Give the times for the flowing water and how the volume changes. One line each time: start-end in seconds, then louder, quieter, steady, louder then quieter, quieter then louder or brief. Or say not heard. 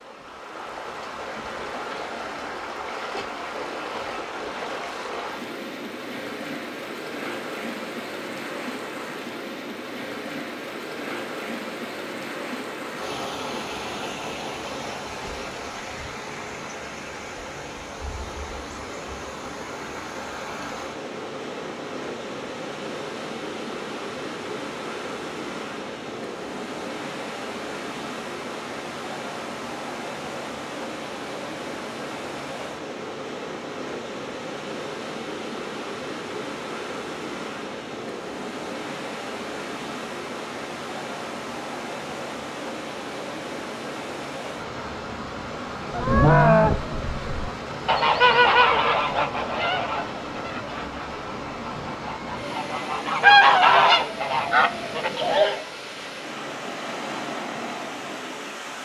0.0-58.8 steady.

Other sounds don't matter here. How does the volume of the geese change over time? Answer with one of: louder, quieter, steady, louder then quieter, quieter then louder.
quieter then louder.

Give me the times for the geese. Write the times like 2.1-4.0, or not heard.
45.9-55.6.